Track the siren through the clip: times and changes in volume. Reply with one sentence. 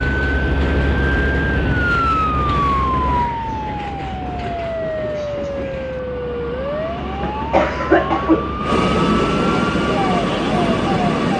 You can hear the siren from 0.0 to 11.2 s, getting quieter.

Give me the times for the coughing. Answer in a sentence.
The coughing can be heard from 7.0 to 8.7 s.